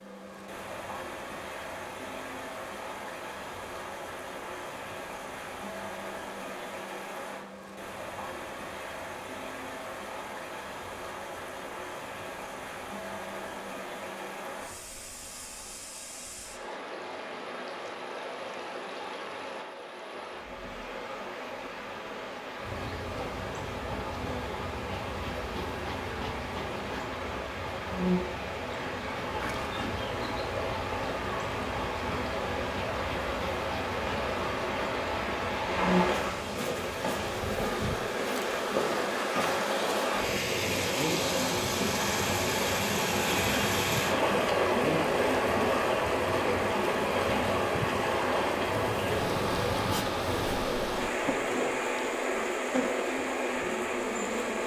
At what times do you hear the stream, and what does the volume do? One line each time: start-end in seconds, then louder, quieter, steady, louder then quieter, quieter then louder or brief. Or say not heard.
0.0-54.6 louder.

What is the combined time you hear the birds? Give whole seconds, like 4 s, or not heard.
not heard.